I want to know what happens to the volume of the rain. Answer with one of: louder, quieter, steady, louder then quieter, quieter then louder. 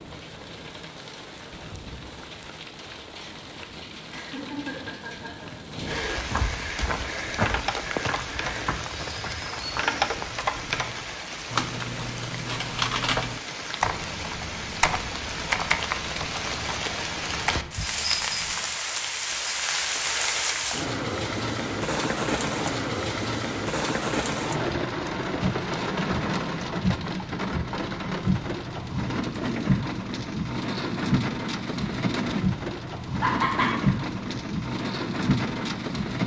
louder.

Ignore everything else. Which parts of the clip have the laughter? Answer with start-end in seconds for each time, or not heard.
4.1-6.4, 33.2-33.7.